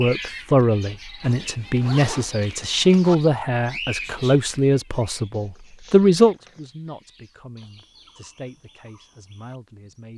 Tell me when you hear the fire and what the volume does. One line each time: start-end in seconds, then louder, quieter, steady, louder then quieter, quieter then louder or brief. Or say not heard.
not heard.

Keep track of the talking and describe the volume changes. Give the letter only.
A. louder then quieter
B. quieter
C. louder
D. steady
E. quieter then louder
B.